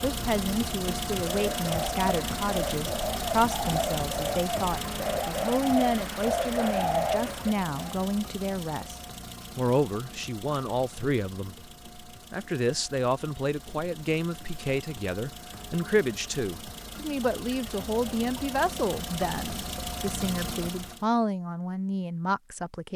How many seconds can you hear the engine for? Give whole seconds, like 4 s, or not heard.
21 s.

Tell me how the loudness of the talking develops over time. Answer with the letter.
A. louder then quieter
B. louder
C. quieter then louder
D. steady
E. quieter
D.